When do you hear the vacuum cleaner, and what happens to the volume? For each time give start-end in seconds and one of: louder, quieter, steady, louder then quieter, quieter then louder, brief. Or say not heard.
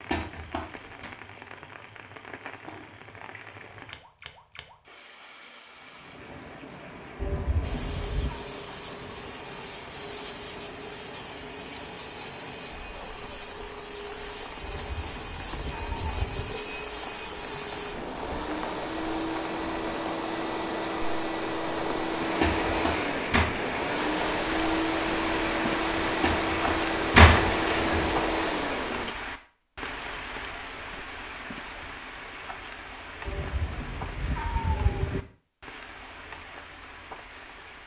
7.6-29.1 louder.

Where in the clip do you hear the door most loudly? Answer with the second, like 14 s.
27 s.